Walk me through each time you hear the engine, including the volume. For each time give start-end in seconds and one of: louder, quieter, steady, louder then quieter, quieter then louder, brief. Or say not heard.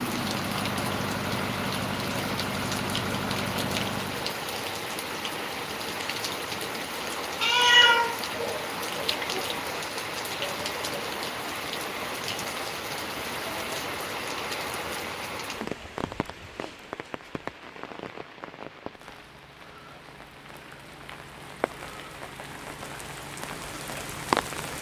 0.0-4.4 steady.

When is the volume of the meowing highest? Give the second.
8 s.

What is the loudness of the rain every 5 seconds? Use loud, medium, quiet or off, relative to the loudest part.
loud, loud, loud, medium, loud.